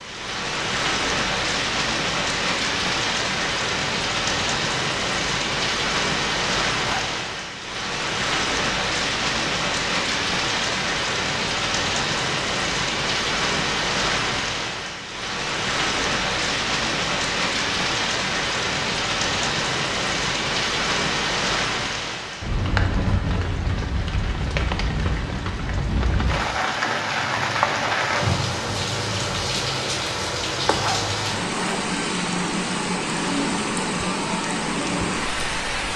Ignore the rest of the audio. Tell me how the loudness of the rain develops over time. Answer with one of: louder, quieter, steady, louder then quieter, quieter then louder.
steady.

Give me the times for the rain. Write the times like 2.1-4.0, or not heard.
0.0-35.9.